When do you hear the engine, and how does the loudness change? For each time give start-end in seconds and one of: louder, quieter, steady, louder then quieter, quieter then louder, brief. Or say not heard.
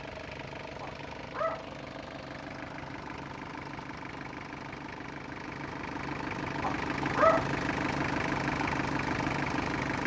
0.0-10.0 louder.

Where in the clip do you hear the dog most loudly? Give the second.
7 s.